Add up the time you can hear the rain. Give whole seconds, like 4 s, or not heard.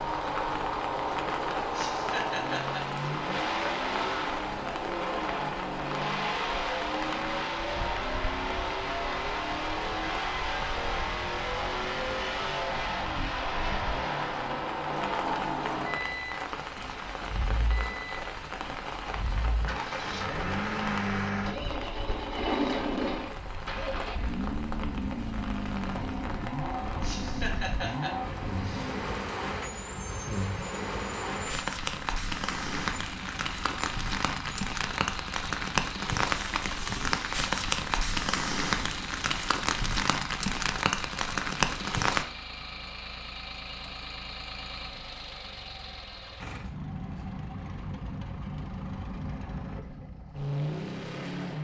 42 s.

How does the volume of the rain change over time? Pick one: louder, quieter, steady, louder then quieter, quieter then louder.
louder.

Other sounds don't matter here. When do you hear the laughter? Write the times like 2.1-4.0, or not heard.
1.7-2.8, 27.0-28.9.